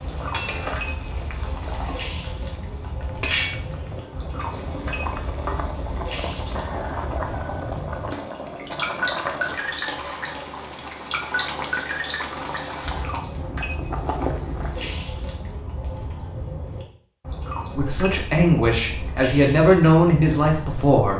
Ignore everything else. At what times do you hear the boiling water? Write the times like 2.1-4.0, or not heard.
0.0-15.1.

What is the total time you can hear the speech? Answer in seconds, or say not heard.
3 s.